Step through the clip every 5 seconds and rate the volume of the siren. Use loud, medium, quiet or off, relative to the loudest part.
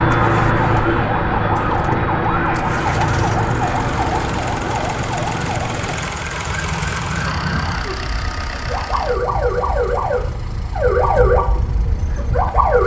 loud, medium, loud.